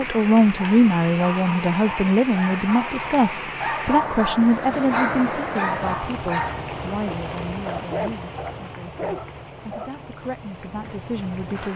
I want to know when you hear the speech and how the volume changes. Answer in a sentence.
The speech can be heard from 0.0 to 11.7 s, getting quieter.